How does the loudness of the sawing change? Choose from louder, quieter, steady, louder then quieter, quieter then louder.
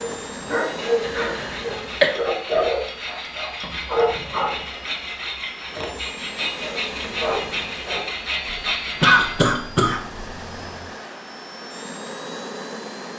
louder.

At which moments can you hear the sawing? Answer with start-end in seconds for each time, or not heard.
0.7-9.4.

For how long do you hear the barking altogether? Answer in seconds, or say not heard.
6 s.